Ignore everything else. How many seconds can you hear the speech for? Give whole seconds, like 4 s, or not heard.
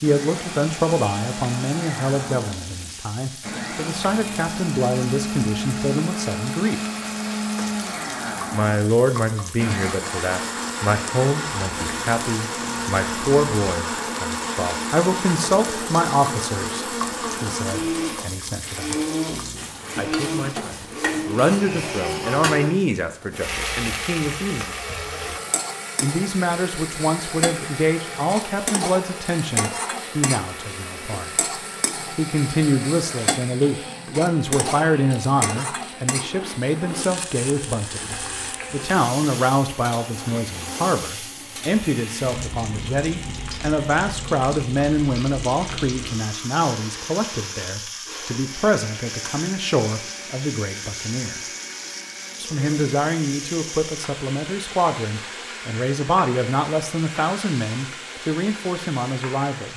54 s.